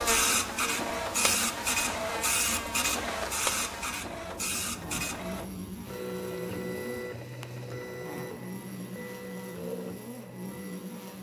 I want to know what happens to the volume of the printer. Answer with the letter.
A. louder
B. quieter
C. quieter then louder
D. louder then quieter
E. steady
B.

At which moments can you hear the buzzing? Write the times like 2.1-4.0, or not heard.
0.0-11.1.